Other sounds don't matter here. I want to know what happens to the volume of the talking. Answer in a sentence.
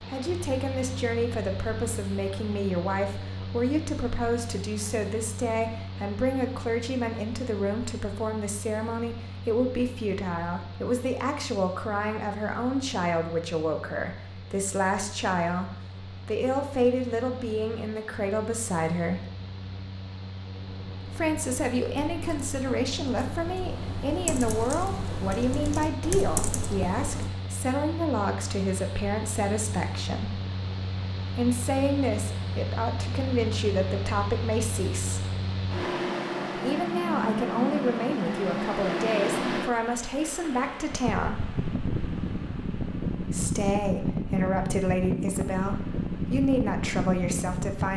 The volume of the talking stays about the same.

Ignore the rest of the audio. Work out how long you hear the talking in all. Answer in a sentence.
The talking can be heard for 42 seconds in total.